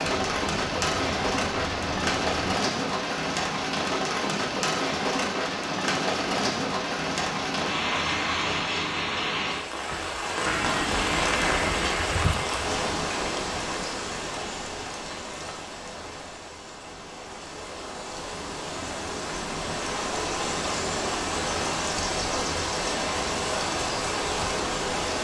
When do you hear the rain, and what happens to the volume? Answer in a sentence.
You can hear the rain from 0.0 to 25.1 s, getting quieter then louder.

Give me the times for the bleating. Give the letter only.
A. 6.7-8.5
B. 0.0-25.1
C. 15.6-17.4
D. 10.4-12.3
D.